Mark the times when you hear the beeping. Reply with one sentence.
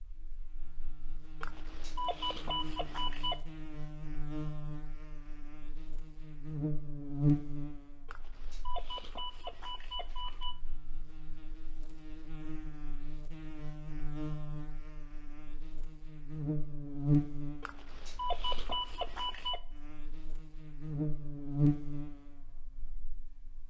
The beeping can be heard from 1.4 to 3.4 s, from 8.1 to 10.6 s and from 17.6 to 19.6 s.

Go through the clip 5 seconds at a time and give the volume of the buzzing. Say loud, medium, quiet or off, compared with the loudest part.
medium, loud, medium, loud, loud.